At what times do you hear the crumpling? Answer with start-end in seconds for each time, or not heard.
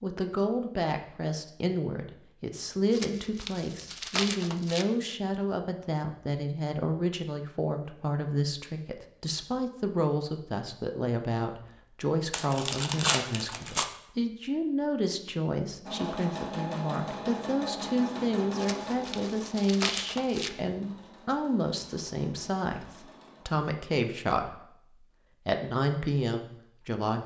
2.9-4.8, 12.3-13.9, 18.6-20.5.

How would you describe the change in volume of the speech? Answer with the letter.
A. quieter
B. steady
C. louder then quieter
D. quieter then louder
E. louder
B.